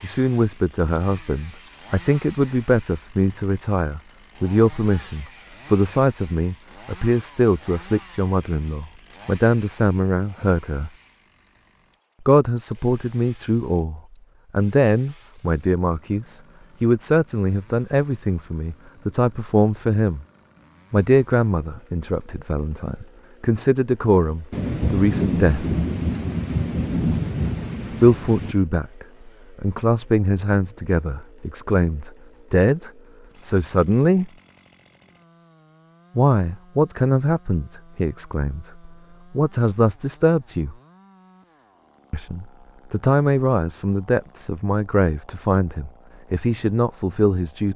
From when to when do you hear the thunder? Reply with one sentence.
The thunder can be heard from 24.5 to 28.6 s.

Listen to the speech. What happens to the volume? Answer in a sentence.
The volume of the speech stays about the same.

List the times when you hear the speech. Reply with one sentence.
You can hear the speech from 0.0 to 10.9 s, from 12.2 to 20.2 s, from 20.9 to 25.8 s, from 27.9 to 34.3 s, from 36.1 to 40.8 s and from 42.1 to 47.7 s.